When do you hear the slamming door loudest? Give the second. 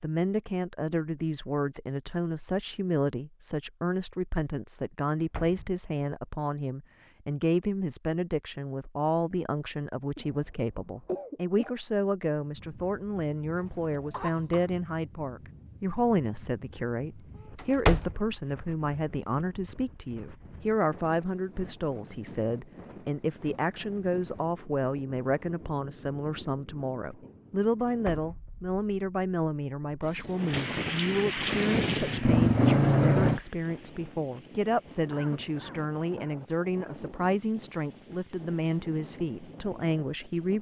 18 s.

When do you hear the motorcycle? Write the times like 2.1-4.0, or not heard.
31.4-33.4.